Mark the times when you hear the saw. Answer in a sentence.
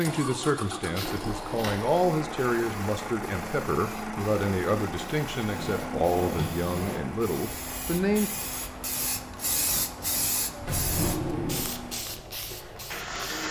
You can't hear the saw here.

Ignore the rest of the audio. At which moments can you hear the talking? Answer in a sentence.
You can hear the talking from 0.0 to 8.3 s.